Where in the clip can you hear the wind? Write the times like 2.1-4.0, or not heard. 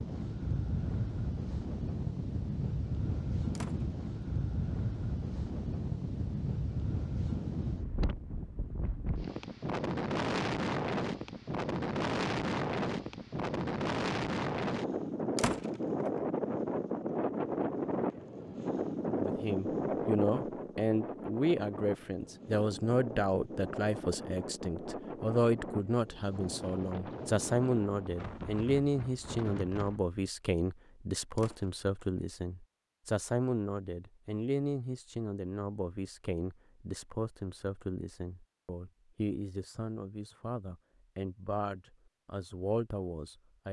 0.0-30.1.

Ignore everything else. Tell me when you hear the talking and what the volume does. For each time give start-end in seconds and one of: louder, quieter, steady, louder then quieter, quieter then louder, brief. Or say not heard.
19.1-43.6 quieter.